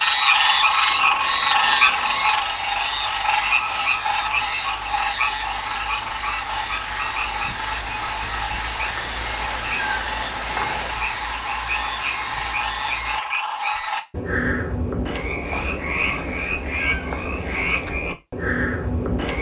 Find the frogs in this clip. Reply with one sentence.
You can hear the frogs from 0.0 to 19.3 s.